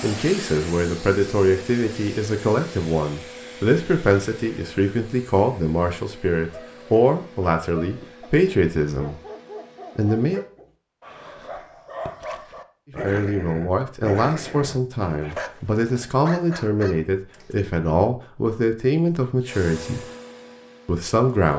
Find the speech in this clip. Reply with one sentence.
The speech can be heard from 0.0 to 9.2 s, from 9.9 to 10.4 s, from 13.0 to 20.1 s and from 20.9 to 21.5 s.